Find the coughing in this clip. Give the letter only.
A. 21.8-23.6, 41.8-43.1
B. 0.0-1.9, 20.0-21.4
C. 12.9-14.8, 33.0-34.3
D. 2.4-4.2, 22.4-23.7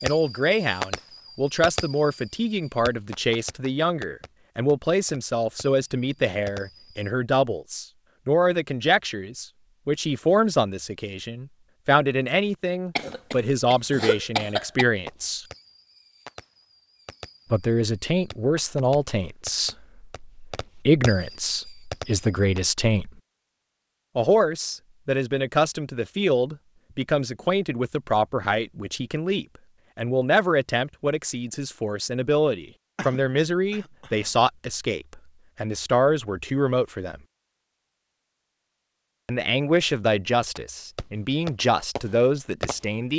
C.